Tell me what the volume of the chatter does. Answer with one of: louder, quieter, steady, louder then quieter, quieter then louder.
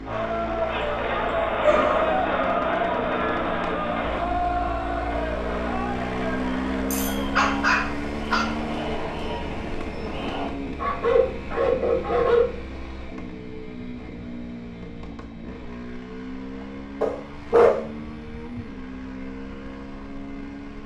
quieter.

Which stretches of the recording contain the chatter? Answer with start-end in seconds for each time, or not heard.
0.0-10.5.